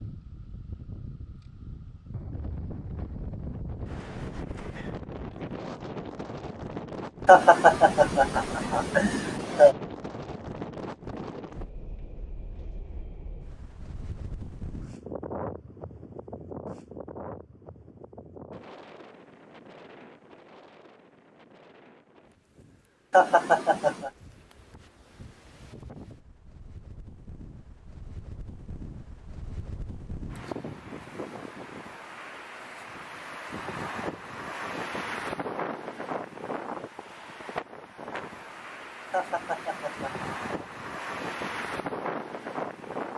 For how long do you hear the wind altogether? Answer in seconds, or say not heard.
43 s.